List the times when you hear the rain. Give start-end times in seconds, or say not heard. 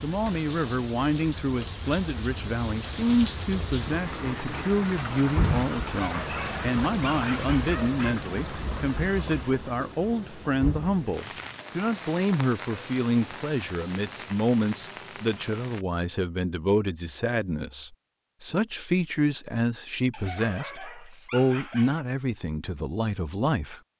0.0-15.8.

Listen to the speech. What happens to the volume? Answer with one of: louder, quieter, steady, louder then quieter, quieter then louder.
steady.